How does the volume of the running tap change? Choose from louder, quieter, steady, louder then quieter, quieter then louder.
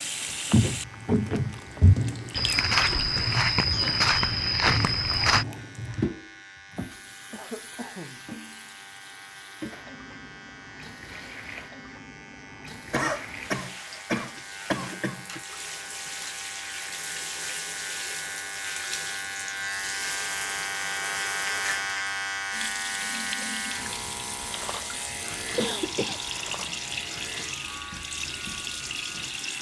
quieter then louder.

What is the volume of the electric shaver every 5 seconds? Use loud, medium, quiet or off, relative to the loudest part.
quiet, quiet, quiet, medium, loud, medium.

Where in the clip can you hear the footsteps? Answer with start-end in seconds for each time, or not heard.
0.5-5.5.